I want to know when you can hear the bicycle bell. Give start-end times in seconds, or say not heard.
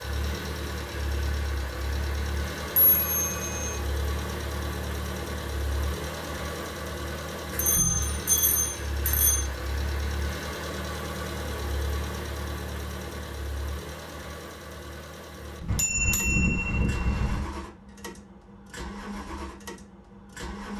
2.8-3.8, 7.5-9.4, 15.7-17.4.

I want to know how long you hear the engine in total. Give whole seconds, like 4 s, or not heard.
21 s.